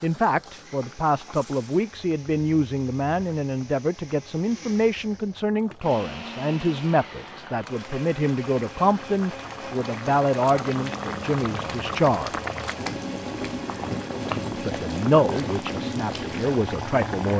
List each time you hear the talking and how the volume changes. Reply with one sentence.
The talking can be heard from 0.0 to 12.3 s, at a steady volume; and briefly from 14.6 to 17.3 s.